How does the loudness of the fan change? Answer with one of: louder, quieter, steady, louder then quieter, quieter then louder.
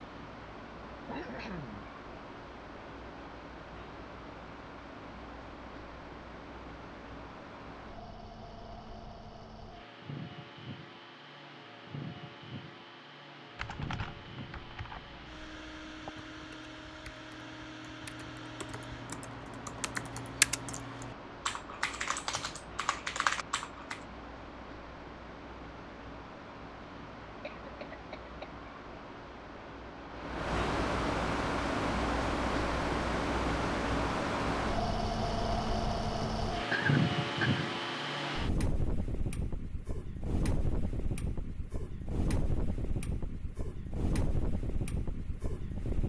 louder.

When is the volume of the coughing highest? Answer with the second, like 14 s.
37 s.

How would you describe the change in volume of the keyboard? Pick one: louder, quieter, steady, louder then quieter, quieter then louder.
louder.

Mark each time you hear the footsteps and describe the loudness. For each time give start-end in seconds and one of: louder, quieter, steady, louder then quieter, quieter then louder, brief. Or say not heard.
not heard.